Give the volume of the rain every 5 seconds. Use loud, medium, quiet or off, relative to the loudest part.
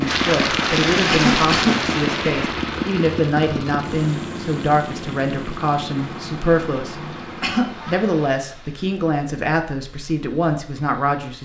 loud, quiet, off.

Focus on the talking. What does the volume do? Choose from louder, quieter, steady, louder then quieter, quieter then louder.
steady.